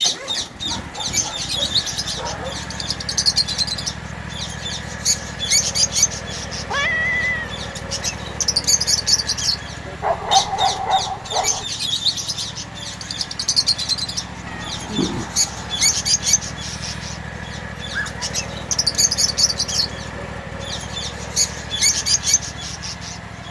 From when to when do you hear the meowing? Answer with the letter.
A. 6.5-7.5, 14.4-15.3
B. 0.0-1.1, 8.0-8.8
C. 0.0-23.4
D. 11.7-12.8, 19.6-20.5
A.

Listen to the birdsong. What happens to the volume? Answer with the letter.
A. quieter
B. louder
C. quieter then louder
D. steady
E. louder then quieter
D.